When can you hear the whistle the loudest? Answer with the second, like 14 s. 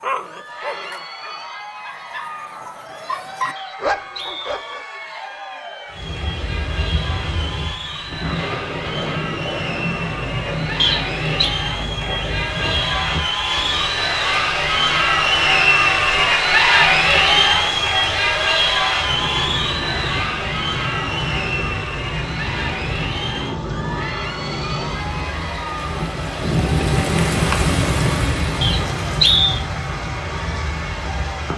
29 s.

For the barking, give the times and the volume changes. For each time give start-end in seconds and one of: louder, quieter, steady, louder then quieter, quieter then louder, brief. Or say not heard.
0.0-4.8 quieter then louder.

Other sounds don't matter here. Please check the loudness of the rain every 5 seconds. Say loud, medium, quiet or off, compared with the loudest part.
off, medium, medium, medium, medium, loud, medium.